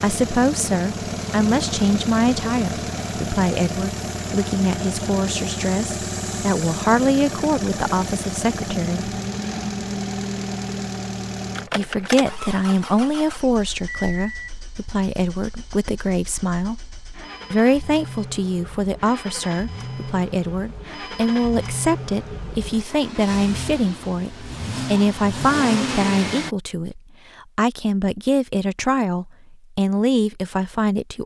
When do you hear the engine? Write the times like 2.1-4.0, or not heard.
0.0-26.6.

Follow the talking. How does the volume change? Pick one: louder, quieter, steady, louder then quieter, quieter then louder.
steady.